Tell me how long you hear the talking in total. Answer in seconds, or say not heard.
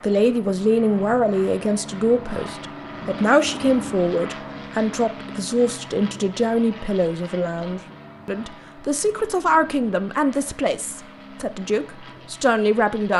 13 s.